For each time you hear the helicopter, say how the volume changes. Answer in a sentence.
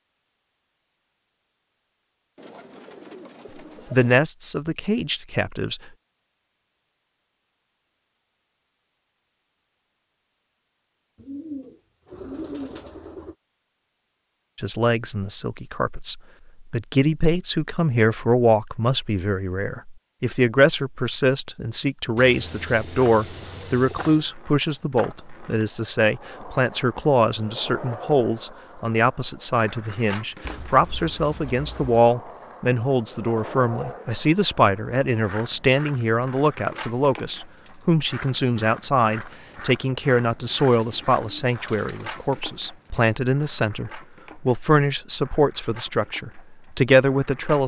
You can't hear the helicopter here.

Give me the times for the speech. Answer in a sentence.
The speech can be heard from 3.9 to 5.8 s and from 14.6 to 47.6 s.